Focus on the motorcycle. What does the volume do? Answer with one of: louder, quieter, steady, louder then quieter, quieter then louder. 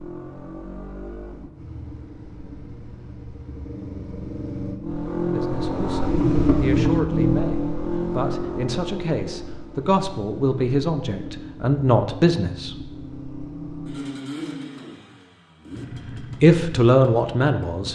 louder then quieter.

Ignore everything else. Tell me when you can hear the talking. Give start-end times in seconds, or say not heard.
5.3-12.9, 16.4-17.8.